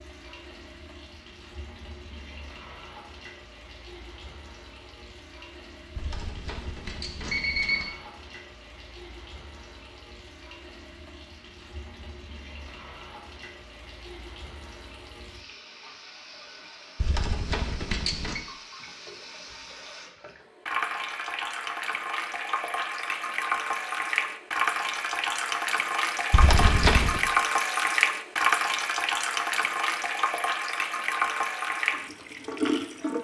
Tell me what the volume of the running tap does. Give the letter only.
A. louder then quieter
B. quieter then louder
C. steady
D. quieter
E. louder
E.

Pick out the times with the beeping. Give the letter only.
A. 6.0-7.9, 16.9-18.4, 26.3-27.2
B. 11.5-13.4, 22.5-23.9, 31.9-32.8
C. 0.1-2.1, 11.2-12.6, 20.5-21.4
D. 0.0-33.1
A.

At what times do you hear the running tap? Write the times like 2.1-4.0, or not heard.
0.0-33.1.